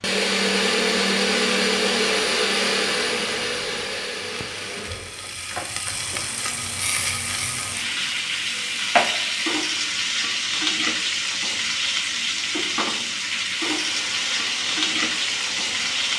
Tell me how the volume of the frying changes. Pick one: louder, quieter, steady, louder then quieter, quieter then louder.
louder.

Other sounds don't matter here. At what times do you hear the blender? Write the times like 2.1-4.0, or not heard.
0.0-7.9, 13.8-16.1.